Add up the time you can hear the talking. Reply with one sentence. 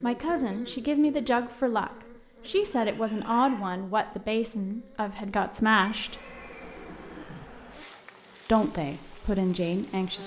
You can hear the talking for 8 seconds altogether.